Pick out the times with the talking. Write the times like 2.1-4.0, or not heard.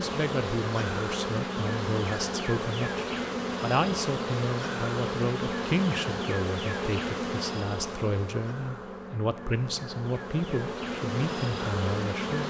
0.0-12.4.